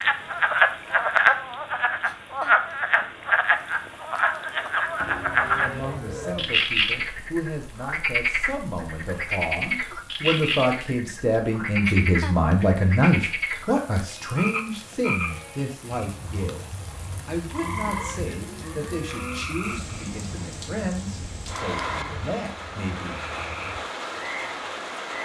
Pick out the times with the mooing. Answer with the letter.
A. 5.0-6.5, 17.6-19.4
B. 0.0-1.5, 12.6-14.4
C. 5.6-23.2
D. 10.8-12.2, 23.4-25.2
A.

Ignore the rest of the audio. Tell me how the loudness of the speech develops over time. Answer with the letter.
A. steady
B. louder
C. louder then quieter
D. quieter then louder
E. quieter
C.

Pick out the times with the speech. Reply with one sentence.
You can hear the speech from 5.6 to 23.2 s.